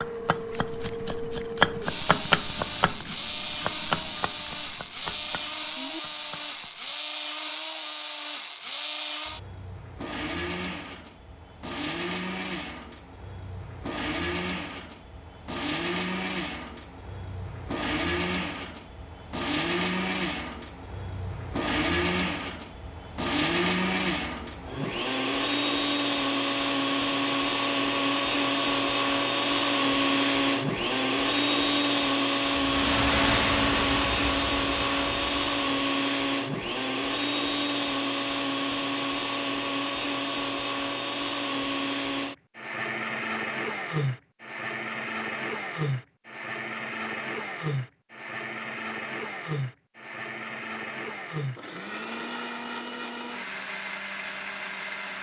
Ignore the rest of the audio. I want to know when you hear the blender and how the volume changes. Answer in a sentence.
You can hear the blender from 0.0 to 55.1 s, getting louder then quieter.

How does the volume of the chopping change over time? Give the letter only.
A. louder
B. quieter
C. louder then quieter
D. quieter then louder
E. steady
C.